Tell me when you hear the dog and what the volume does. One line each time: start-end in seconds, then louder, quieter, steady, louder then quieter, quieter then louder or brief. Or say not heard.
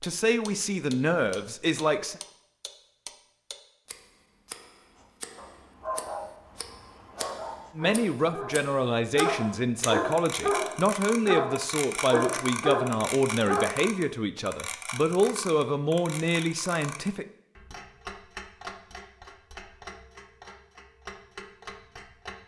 5.0-13.7 louder.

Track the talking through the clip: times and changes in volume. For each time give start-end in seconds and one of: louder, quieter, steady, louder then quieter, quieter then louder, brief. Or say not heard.
0.0-2.1 brief
7.8-17.2 steady.